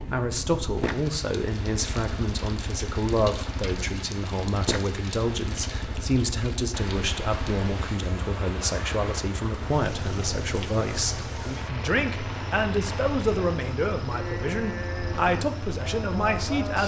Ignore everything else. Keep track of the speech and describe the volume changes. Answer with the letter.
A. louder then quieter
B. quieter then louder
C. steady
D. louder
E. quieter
C.